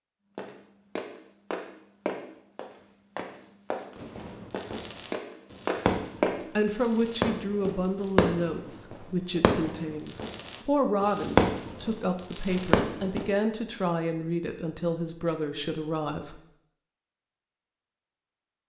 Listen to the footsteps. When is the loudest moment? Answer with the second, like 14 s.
6 s.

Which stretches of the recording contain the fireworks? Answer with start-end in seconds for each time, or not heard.
4.0-13.3.